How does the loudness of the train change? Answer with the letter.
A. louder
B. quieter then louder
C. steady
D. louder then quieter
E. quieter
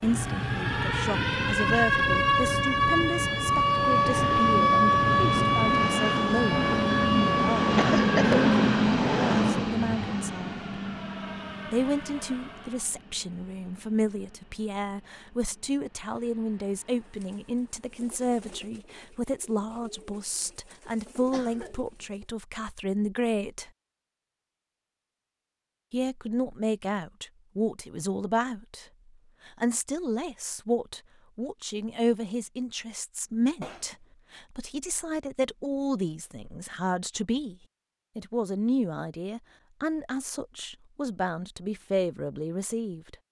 D.